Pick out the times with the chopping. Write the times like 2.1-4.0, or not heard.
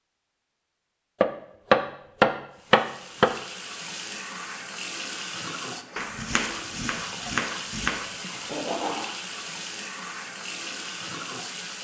1.2-3.3, 6.0-8.1.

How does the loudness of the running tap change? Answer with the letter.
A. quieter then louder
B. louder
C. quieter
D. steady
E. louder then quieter
D.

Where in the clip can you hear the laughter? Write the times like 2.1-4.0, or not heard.
8.3-9.1.